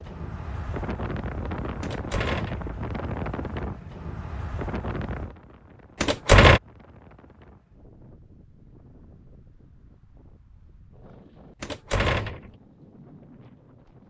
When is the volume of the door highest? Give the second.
6 s.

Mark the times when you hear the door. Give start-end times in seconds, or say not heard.
1.8-2.7, 6.0-6.6, 11.6-12.5.